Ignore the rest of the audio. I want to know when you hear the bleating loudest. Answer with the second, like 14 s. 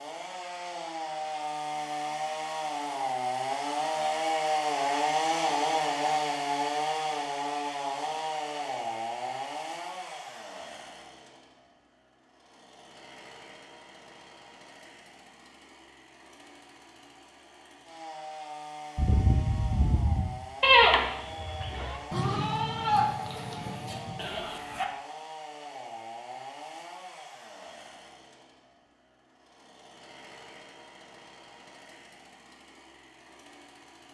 21 s.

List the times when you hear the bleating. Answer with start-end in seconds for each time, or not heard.
18.9-24.9.